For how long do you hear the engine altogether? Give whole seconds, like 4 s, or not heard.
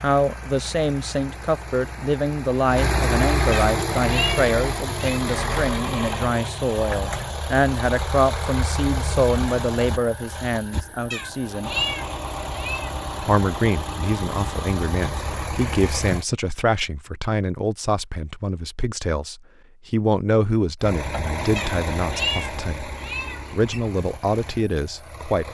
21 s.